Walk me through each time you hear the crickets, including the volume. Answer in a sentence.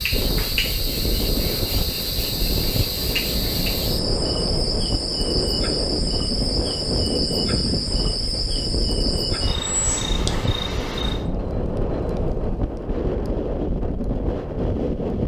The crickets can be heard from 0.0 to 11.2 s, at a steady volume.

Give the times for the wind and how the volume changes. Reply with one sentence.
The wind can be heard from 0.0 to 15.2 s, at a steady volume.